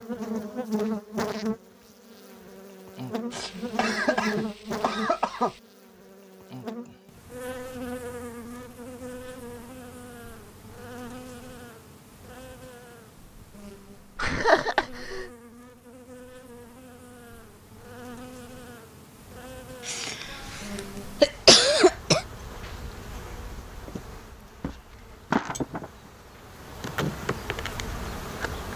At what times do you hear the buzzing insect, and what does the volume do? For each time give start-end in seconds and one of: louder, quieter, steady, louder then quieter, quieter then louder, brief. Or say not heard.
0.0-28.7 quieter then louder.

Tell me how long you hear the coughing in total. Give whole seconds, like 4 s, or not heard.
6 s.